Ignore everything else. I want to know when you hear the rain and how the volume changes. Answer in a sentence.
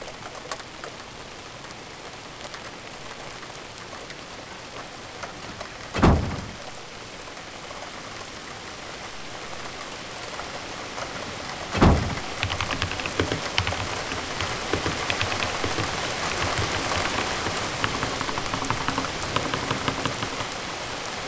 The rain can be heard from 0.0 to 21.2 s, getting louder.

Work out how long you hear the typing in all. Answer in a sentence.
You can hear the typing for 8 seconds altogether.